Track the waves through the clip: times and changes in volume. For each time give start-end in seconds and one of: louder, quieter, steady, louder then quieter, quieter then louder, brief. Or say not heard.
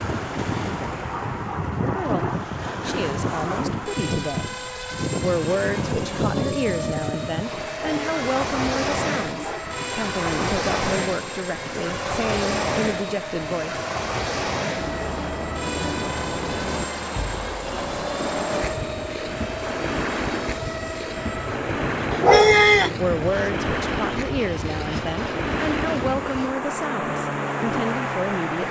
0.0-28.6 steady.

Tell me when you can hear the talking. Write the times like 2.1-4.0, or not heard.
1.9-4.5, 5.2-13.8, 22.9-28.6.